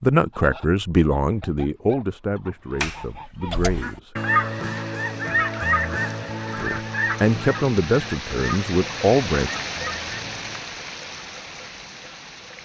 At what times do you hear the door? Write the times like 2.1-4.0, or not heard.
2.8-3.8.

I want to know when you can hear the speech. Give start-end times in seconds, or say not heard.
0.0-4.2, 6.5-9.5.